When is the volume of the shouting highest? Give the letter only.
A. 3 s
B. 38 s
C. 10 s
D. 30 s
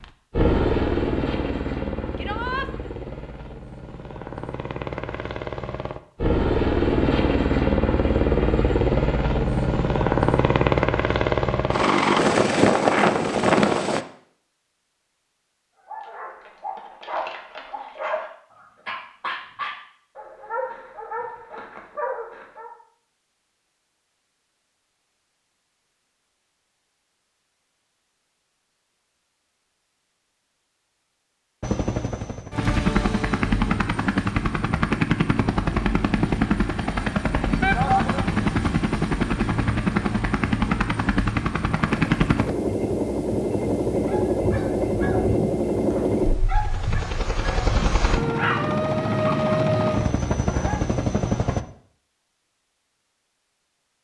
B.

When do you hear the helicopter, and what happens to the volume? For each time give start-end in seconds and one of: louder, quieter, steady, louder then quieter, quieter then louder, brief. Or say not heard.
0.0-14.1 quieter then louder
31.6-51.6 steady.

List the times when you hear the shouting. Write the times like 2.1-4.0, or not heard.
2.1-2.7, 37.6-38.2.